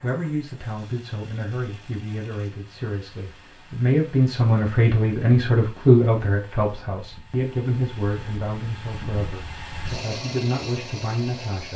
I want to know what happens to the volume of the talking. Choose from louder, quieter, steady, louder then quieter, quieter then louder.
louder then quieter.